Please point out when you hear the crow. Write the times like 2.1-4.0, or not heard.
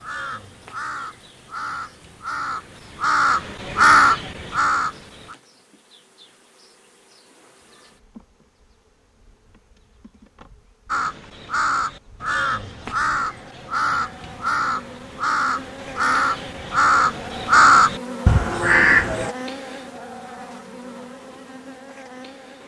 0.0-5.3, 10.8-19.4.